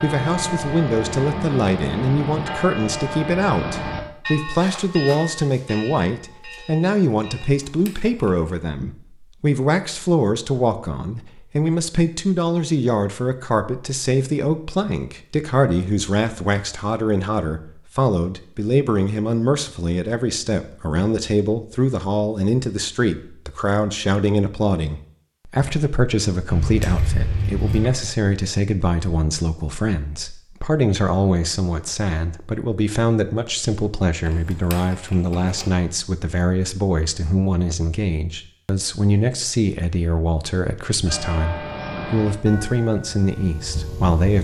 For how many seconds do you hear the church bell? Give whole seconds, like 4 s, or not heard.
11 s.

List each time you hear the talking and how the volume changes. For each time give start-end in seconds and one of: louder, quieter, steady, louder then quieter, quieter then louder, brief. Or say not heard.
0.0-44.3 steady.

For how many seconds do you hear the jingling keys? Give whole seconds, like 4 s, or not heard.
4 s.